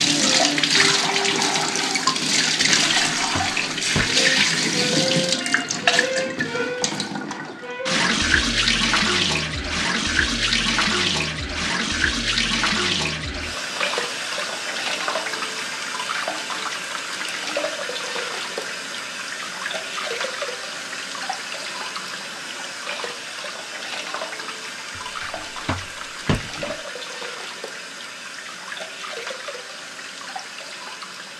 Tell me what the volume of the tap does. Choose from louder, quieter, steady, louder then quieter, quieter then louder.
quieter.